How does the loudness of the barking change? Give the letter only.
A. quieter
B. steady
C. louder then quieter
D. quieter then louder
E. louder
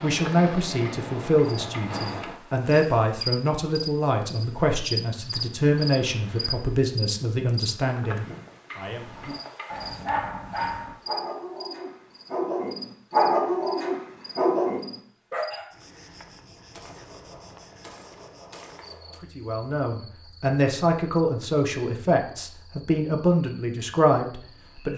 E.